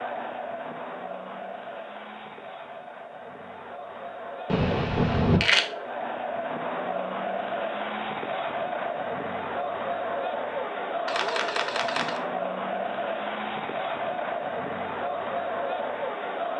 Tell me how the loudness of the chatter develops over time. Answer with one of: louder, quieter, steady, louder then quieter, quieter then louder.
louder.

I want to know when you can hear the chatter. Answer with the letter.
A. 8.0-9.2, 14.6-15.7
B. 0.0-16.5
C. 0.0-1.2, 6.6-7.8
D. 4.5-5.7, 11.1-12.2
B.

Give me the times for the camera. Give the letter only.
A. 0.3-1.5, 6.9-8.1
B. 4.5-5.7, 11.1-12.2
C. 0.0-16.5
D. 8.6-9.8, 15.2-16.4
B.